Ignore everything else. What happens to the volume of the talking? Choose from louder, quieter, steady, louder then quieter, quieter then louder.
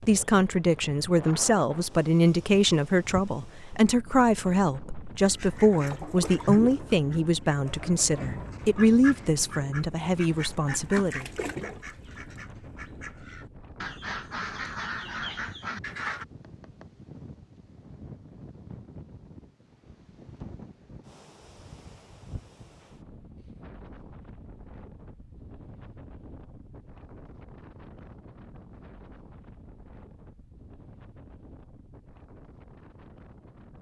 steady.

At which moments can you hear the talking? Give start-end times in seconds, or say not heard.
0.1-11.2.